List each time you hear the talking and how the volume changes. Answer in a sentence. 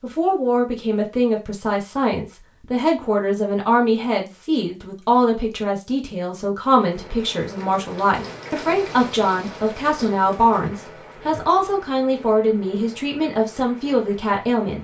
The talking can be heard from 0.0 to 14.8 s, at a steady volume.